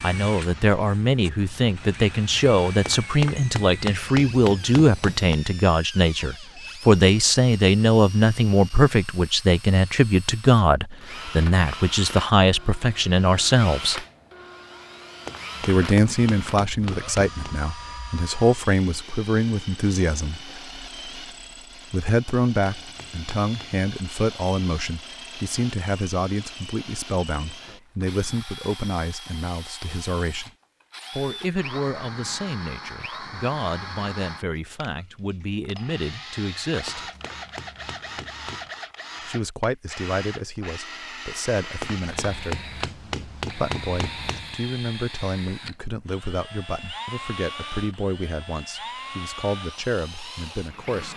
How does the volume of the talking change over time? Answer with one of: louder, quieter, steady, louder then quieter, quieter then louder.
quieter.